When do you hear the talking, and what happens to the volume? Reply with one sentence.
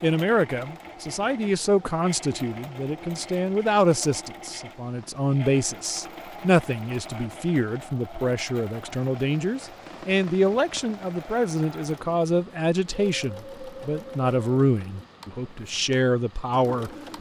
You can hear the talking from 0.0 to 17.1 s, at a steady volume.